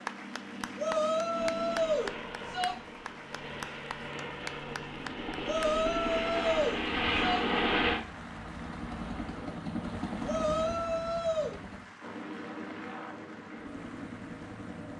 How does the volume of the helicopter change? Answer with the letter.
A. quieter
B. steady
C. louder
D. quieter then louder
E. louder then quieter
E.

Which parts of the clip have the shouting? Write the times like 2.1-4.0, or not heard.
0.8-2.8, 5.5-7.4, 10.2-11.6.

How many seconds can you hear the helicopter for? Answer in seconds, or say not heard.
15 s.